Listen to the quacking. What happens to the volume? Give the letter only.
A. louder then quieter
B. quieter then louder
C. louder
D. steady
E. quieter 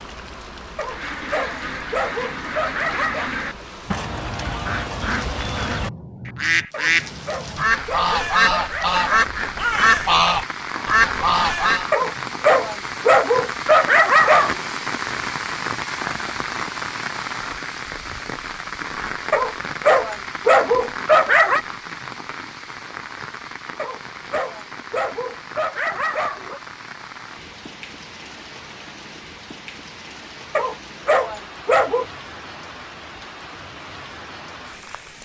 C.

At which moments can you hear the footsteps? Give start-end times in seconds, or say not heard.
not heard.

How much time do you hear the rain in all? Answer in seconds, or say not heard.
35 s.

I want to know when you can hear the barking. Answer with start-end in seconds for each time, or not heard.
0.8-3.3, 6.7-9.1, 11.9-14.6, 19.3-21.6, 23.8-26.6, 30.6-32.0.